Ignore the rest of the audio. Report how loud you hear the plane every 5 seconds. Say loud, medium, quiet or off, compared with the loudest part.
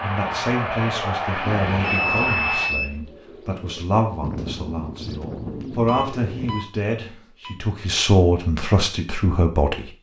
loud, off.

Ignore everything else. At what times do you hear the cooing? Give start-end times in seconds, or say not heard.
1.4-6.6.